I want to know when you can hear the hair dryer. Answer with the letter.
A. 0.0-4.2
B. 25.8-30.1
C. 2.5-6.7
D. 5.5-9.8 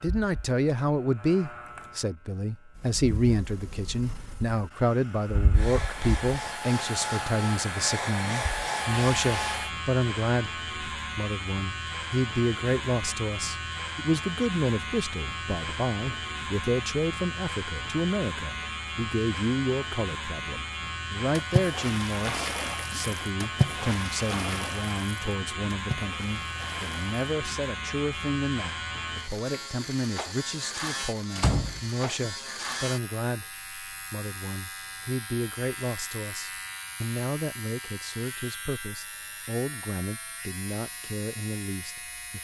D.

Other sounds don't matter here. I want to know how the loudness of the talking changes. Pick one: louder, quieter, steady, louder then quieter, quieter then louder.
quieter.